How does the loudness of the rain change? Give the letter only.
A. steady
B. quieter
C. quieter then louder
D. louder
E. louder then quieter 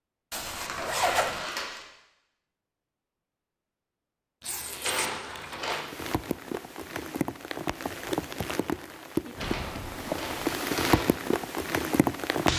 D.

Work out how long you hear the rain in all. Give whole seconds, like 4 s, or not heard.
7 s.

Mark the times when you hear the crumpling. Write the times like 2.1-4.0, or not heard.
0.3-1.9, 4.8-5.8, 9.4-11.1.